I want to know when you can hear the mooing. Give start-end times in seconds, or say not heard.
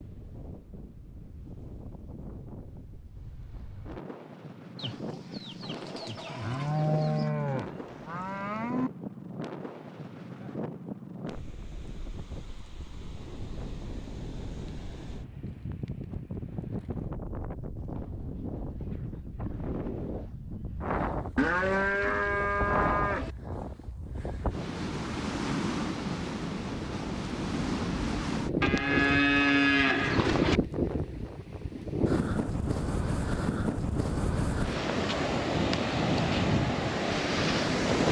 6.4-8.9, 21.4-23.3, 28.6-30.6.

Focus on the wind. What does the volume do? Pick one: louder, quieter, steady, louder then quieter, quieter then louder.
louder.